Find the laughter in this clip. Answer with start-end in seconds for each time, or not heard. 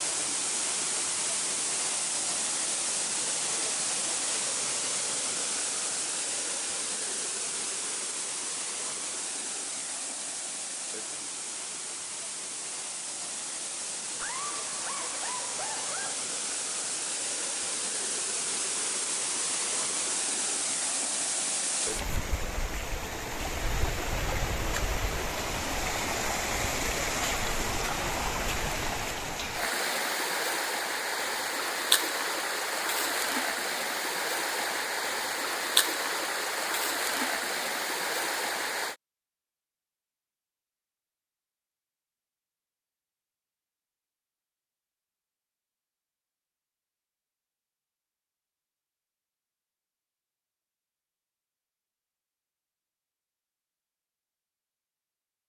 14.2-16.2.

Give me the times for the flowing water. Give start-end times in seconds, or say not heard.
0.0-39.0.